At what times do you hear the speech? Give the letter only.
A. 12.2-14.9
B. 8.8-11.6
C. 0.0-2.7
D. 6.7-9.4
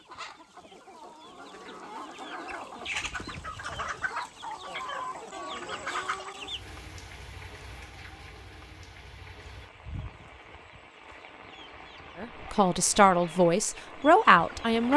A.